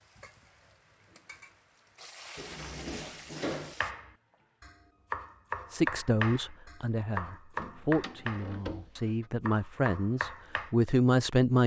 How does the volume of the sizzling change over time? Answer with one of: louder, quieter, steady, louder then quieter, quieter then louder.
louder then quieter.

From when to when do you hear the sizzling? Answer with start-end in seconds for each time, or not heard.
0.0-4.8.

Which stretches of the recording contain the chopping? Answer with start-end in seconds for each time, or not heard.
3.6-10.7.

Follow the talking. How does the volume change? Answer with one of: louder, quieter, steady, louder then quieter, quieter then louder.
quieter then louder.